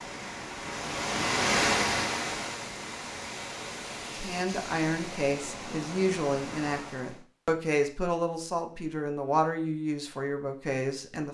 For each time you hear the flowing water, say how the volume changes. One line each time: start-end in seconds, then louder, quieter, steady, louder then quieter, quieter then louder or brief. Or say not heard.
0.0-7.2 quieter.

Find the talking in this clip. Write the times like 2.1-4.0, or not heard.
4.0-11.2.